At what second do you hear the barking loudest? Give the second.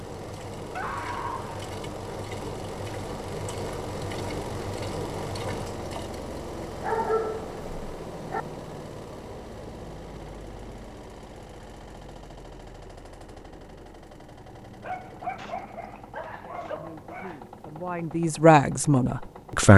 7 s.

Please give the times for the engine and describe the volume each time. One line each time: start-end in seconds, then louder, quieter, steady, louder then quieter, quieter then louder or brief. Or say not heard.
0.0-19.7 quieter.